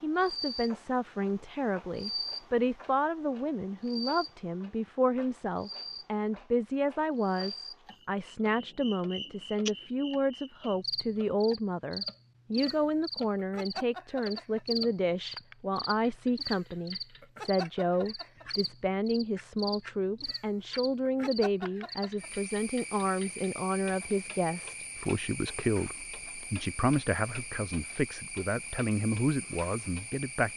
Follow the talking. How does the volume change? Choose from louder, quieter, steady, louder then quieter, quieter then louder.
steady.